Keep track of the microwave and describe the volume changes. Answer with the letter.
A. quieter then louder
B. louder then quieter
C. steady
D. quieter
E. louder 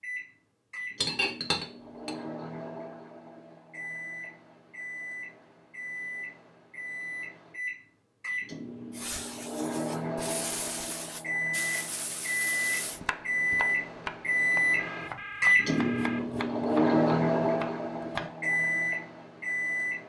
E.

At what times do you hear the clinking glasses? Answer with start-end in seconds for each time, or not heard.
1.0-2.1.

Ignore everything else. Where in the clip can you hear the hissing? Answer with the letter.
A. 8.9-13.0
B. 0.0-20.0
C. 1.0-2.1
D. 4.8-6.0
A.